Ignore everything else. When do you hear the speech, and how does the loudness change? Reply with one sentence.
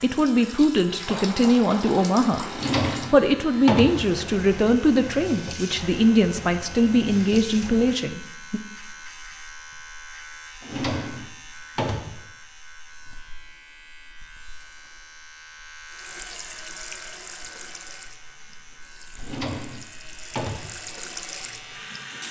You can hear the speech from 0.0 to 8.6 s, at a steady volume.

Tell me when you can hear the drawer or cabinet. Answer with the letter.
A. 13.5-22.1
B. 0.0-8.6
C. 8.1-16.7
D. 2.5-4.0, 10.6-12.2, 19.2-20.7
D.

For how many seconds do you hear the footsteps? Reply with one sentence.
The footsteps can't be heard in this clip.